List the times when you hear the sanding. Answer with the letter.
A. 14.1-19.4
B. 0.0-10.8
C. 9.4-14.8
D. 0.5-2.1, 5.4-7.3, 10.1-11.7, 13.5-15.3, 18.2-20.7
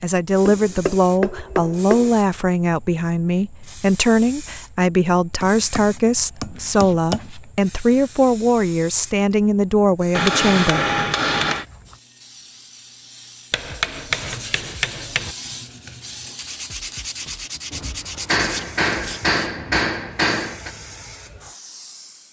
A.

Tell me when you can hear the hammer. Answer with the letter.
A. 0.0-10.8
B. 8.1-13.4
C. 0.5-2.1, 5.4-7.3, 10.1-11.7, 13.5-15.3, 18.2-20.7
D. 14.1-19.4
C.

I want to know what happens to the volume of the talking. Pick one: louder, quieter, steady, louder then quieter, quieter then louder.
steady.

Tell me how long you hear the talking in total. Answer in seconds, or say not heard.
11 s.